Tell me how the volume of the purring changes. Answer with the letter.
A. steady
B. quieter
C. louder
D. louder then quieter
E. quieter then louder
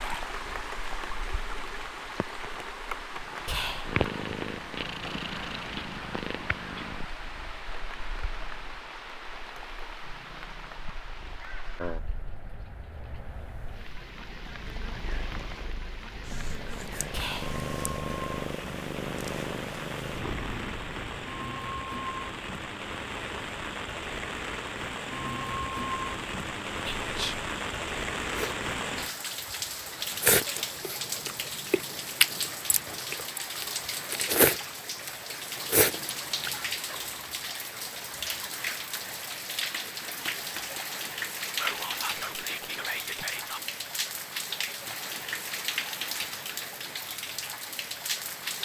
E.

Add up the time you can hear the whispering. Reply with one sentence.
You can hear the whispering for 4 seconds altogether.